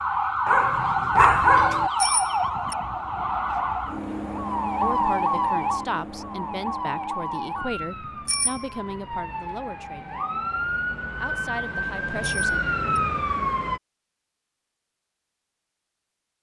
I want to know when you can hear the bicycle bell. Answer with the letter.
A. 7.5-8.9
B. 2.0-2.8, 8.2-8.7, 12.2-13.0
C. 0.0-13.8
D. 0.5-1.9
B.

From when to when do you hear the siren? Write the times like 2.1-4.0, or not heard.
0.0-13.8.